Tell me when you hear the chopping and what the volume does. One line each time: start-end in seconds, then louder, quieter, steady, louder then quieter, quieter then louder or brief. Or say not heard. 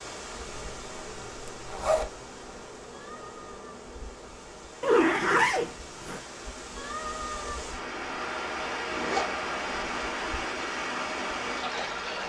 not heard.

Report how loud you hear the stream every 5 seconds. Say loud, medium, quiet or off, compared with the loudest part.
quiet, loud, loud.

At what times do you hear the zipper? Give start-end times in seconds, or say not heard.
0.7-2.1, 4.8-6.2, 8.9-10.1.